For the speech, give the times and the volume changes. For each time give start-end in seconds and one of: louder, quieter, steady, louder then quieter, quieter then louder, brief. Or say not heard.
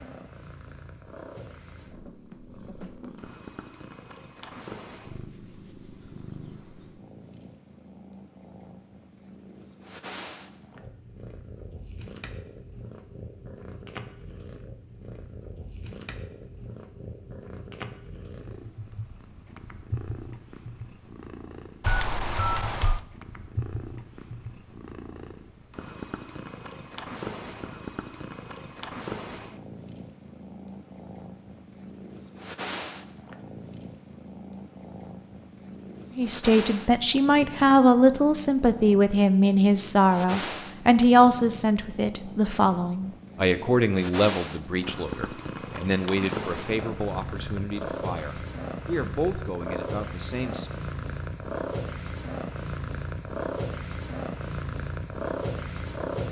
36.1-50.7 quieter.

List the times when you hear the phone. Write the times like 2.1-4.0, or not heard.
21.8-23.1.